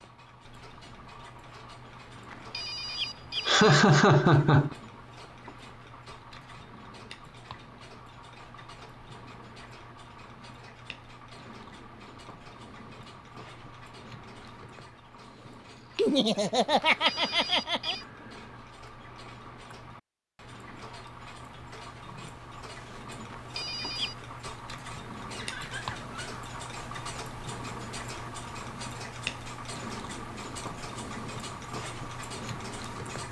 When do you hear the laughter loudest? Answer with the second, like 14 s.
4 s.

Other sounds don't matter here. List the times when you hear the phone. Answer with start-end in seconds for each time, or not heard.
2.2-3.6, 16.9-18.1, 23.3-24.1.